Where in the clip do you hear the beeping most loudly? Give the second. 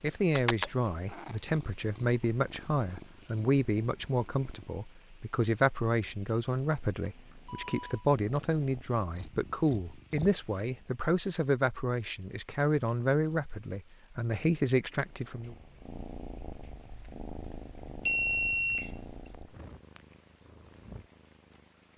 18 s.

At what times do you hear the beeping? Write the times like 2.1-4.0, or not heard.
7.0-8.1, 18.0-19.2.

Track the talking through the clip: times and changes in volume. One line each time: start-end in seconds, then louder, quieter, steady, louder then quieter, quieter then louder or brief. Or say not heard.
0.0-15.6 steady.